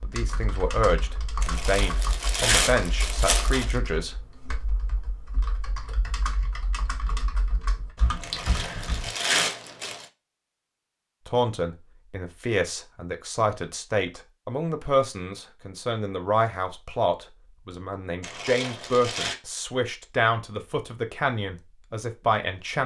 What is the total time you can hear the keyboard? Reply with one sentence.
You can hear the keyboard for 9 seconds altogether.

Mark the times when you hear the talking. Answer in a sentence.
You can hear the talking from 0.0 to 4.3 s and from 11.2 to 22.8 s.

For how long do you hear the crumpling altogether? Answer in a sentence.
You can hear the crumpling for 5 seconds altogether.